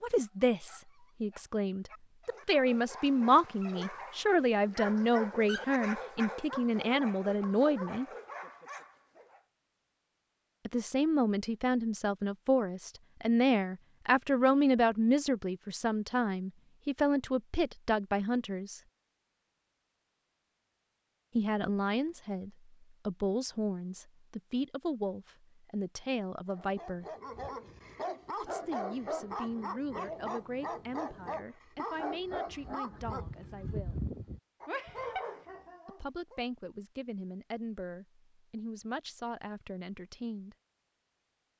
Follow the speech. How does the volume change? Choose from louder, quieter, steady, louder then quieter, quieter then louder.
quieter.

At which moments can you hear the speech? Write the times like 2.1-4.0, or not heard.
0.0-8.1, 10.7-18.8, 21.4-27.1, 28.4-34.0, 35.9-40.5.